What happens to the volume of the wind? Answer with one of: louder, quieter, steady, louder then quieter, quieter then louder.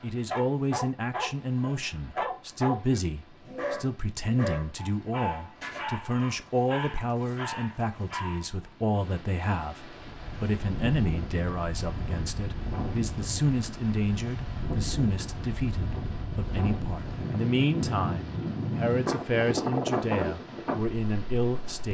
louder.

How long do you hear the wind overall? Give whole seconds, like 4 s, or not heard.
12 s.